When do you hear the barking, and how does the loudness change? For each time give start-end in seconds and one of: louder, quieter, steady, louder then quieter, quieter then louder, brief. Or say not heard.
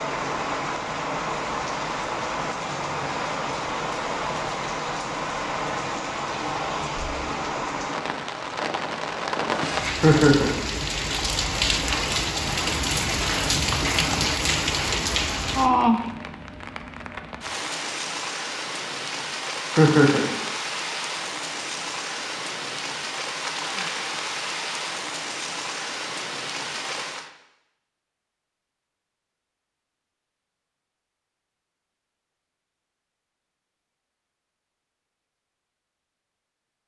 not heard.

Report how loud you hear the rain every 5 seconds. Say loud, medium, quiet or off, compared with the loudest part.
loud, loud, loud, loud, medium, medium, off, off.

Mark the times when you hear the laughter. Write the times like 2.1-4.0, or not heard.
10.0-10.6, 19.8-20.2.